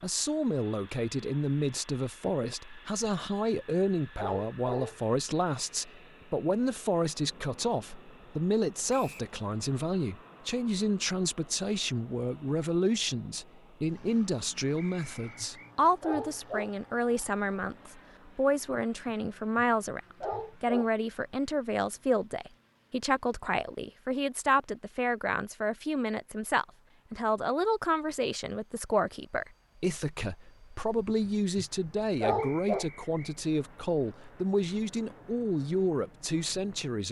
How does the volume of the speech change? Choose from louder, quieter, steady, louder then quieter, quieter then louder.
steady.